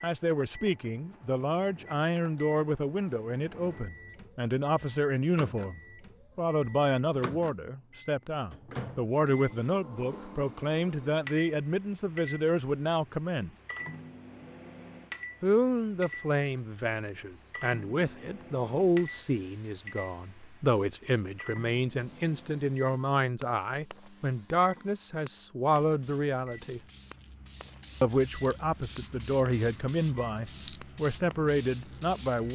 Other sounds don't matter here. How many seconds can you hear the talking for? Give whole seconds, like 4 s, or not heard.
29 s.